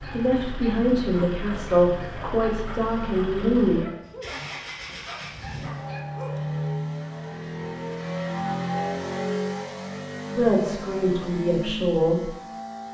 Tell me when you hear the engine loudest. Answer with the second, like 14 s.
9 s.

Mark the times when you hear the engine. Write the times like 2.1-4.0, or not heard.
0.0-12.8.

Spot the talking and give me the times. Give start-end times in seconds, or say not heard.
0.1-3.8, 10.3-12.3.